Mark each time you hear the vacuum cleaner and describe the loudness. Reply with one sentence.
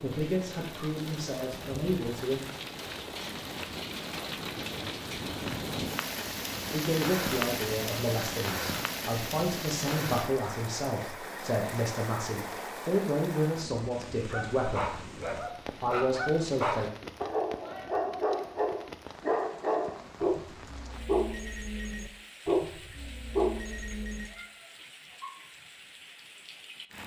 The vacuum cleaner can't be heard in this clip.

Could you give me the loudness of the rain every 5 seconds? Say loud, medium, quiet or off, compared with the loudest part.
medium, loud, medium, quiet, quiet, quiet.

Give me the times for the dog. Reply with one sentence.
The dog can be heard from 14.3 to 24.3 s.